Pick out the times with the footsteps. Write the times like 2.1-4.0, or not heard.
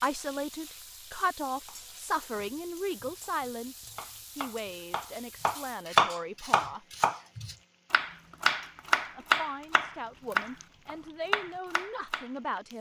not heard.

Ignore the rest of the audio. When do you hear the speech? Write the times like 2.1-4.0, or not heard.
0.0-6.8, 8.9-12.7.